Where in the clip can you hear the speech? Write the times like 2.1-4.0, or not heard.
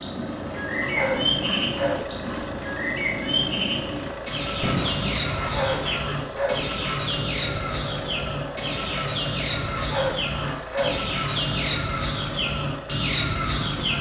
not heard.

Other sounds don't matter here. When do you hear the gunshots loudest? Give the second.
5 s.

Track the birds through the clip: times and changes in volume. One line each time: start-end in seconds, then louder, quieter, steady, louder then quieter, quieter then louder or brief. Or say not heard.
0.0-13.9 steady.